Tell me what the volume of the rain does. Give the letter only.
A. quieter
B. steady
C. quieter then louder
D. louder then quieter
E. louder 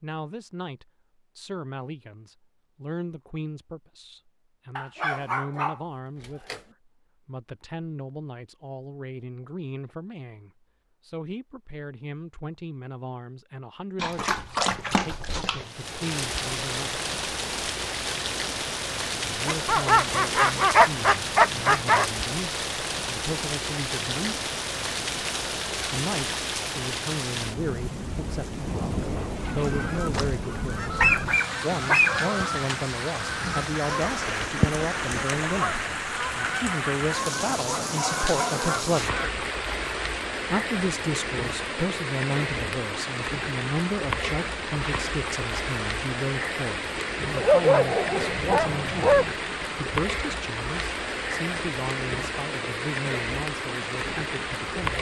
B.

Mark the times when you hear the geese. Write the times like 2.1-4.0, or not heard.
29.6-39.4.